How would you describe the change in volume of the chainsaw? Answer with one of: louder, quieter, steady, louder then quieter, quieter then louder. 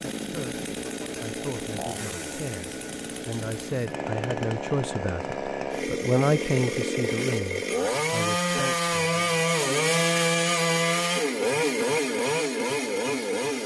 louder.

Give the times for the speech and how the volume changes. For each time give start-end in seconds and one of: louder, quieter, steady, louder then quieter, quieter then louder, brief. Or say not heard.
0.2-9.2 louder then quieter.